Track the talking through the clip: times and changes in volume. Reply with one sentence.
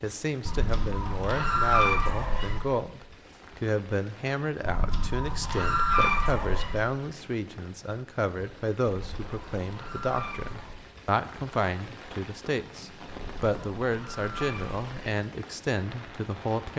The talking can be heard from 0.0 to 16.7 s, at a steady volume.